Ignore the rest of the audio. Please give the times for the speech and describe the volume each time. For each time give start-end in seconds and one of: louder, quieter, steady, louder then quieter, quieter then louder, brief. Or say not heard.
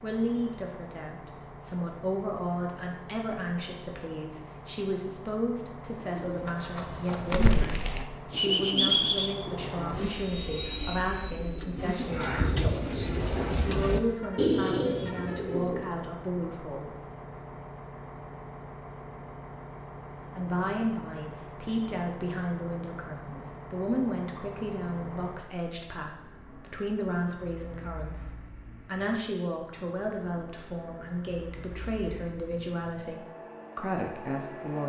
0.0-16.9 steady
20.4-34.8 steady.